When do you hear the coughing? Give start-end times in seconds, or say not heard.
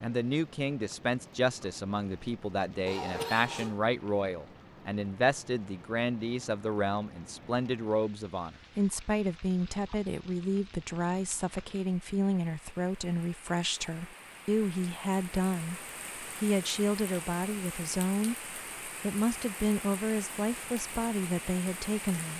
2.9-3.8.